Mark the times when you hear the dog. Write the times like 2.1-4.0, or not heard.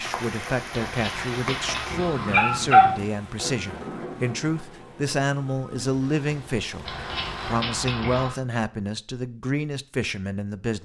0.7-3.0, 6.8-8.3.